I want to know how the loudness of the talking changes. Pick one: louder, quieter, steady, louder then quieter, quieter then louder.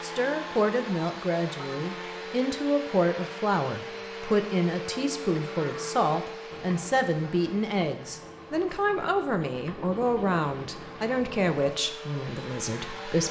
steady.